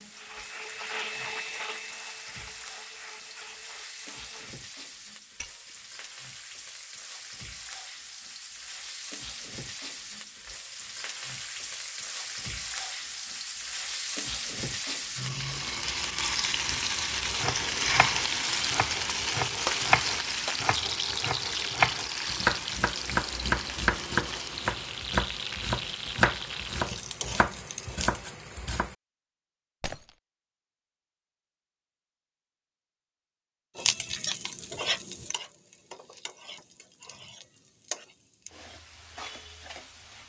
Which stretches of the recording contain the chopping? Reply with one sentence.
The chopping can be heard from 17.1 to 28.9 s.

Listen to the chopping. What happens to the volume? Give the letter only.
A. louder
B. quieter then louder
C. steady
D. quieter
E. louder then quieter
E.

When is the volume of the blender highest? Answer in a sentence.
The loudest moment of the blender is at 1 second.